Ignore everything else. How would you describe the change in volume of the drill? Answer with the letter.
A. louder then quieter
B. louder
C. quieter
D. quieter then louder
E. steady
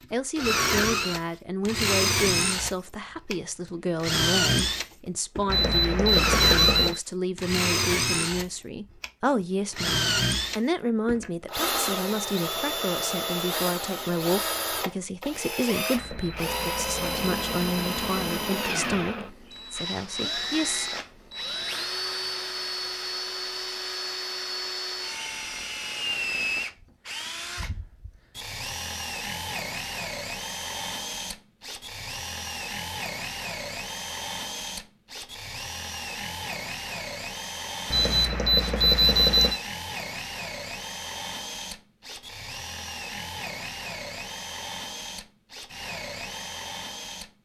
C.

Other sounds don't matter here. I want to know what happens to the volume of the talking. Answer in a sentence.
The volume of the talking stays about the same.